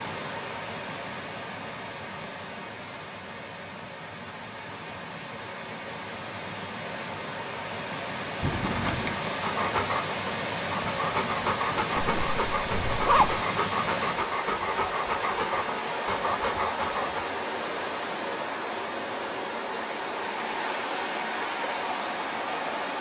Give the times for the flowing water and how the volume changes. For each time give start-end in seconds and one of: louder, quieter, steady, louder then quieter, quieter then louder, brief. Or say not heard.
0.0-22.9 louder.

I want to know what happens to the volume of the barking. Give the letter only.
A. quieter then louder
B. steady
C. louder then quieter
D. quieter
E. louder
B.